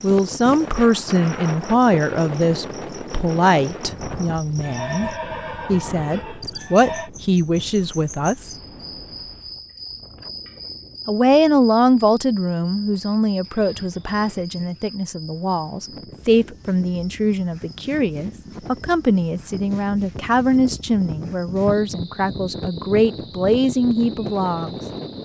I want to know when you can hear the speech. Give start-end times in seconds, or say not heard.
0.0-8.5, 11.1-24.8.